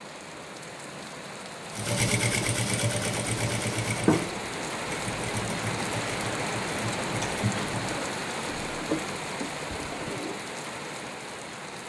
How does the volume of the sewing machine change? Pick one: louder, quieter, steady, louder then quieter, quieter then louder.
quieter.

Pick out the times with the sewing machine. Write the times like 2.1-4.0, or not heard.
1.7-10.4.